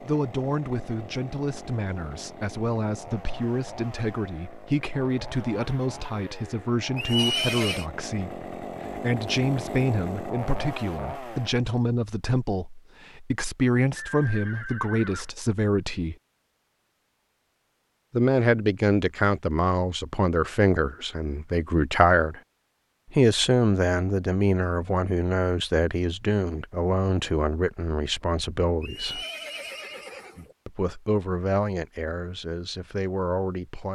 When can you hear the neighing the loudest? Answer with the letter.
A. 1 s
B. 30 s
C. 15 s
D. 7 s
D.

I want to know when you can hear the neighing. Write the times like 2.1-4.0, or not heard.
7.0-7.8, 13.9-15.3, 28.8-30.6.